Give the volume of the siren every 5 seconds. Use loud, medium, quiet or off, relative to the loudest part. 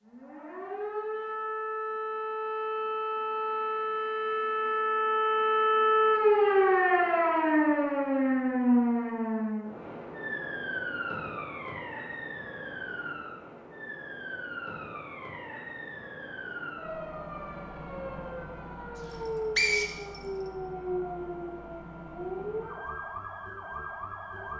medium, loud, quiet, quiet, quiet.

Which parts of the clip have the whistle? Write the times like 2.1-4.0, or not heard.
19.0-20.2.